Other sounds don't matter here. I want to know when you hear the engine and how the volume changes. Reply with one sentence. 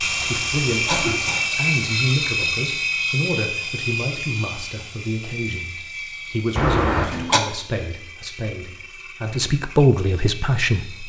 The engine can be heard from 0.0 to 11.0 s, getting quieter.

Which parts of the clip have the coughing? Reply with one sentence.
You can hear the coughing from 0.1 to 1.5 s and from 6.5 to 7.4 s.